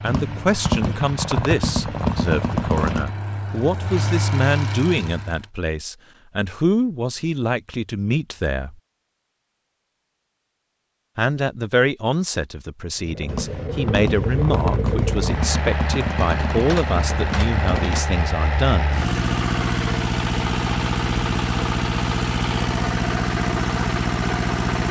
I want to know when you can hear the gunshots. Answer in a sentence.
You can hear the gunshots from 0.1 to 3.1 s and from 13.2 to 18.1 s.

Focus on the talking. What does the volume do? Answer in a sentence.
The loudness of the talking stays about the same.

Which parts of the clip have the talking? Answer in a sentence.
The talking can be heard from 0.0 to 8.8 s and from 11.2 to 18.9 s.